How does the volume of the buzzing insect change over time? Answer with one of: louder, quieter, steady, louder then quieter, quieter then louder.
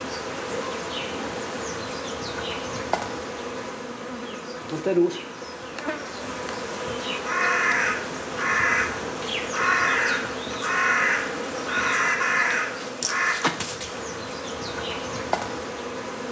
steady.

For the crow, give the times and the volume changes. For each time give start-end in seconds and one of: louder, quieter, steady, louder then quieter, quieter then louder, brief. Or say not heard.
7.2-13.3 steady.